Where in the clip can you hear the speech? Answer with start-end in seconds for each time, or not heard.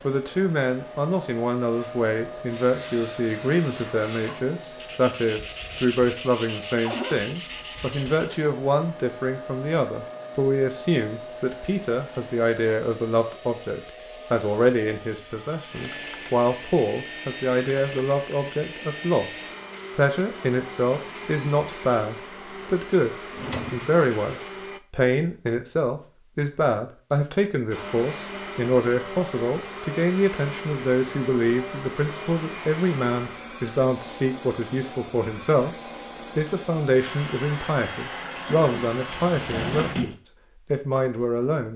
0.0-35.8, 36.4-41.7.